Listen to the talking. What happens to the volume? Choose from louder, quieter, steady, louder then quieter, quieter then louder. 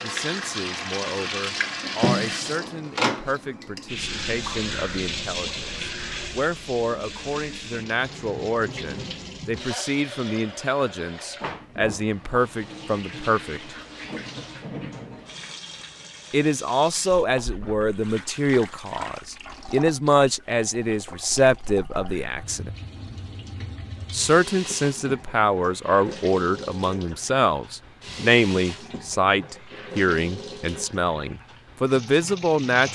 louder.